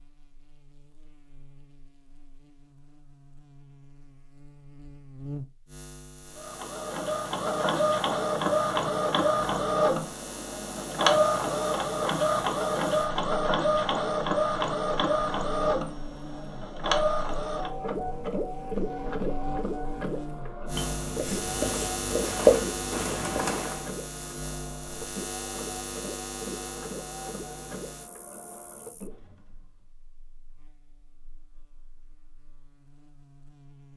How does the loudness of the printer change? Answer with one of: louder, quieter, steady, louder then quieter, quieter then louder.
quieter.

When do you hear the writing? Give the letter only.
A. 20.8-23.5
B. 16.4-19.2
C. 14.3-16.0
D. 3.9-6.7
A.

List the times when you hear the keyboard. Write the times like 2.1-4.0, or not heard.
22.1-23.9.